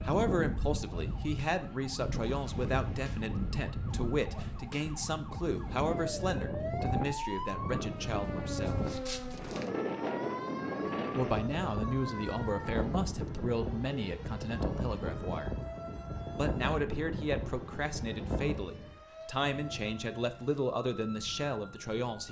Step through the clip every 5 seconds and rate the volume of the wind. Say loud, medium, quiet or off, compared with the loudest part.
loud, loud, loud, loud, quiet.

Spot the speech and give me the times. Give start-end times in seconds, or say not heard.
0.0-8.8, 11.2-15.6, 16.3-22.2.